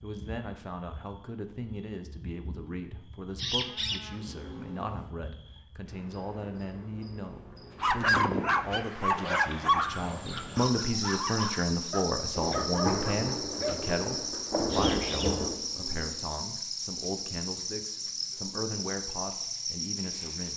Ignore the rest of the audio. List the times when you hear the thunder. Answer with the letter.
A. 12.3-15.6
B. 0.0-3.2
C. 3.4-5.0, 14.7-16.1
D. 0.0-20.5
A.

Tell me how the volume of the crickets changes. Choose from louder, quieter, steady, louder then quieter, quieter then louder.
louder.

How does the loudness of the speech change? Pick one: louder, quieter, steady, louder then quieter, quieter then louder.
louder then quieter.